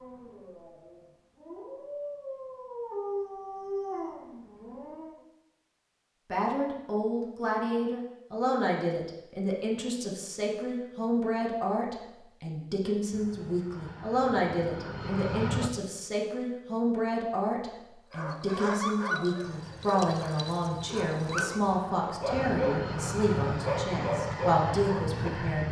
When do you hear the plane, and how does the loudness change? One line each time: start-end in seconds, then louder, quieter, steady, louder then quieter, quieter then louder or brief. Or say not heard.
13.1-15.7 brief
19.4-25.6 louder.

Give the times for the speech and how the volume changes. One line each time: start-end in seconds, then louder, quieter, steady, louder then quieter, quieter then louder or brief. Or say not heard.
6.3-25.6 steady.